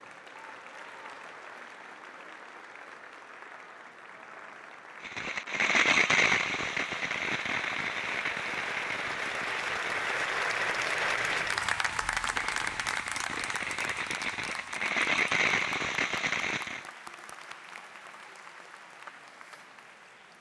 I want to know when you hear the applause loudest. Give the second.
11 s.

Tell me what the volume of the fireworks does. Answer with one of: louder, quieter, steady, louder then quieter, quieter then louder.
quieter then louder.